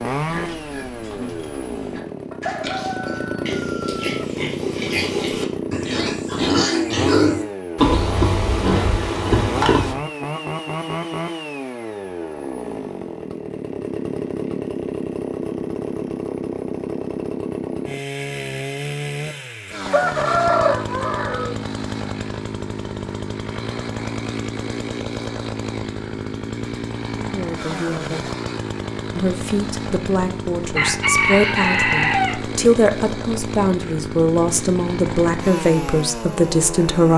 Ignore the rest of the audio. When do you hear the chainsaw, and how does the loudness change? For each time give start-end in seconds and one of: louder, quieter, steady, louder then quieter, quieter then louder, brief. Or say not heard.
0.0-37.1 steady.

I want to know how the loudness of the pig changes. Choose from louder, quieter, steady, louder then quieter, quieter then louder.
louder.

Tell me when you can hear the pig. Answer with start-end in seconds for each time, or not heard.
0.1-9.9.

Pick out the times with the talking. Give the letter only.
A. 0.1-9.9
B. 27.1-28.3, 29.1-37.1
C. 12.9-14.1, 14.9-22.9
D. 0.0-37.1
B.